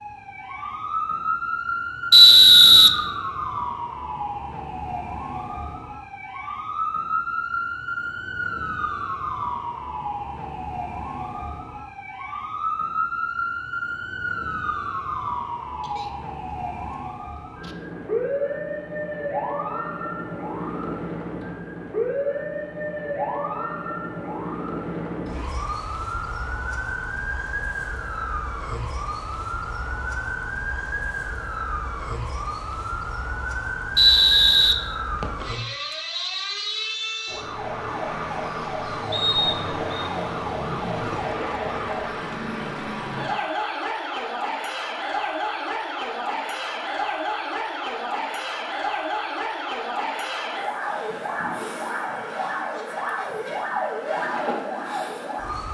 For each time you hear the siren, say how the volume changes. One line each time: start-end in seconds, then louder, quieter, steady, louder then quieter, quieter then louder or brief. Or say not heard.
0.0-55.6 steady.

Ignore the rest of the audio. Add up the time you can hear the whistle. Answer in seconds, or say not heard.
3 s.